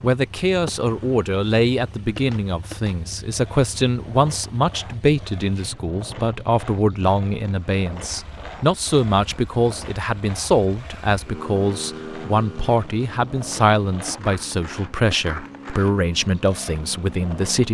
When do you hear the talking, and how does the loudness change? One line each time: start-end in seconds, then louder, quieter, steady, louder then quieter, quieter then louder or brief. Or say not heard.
0.0-17.6 steady.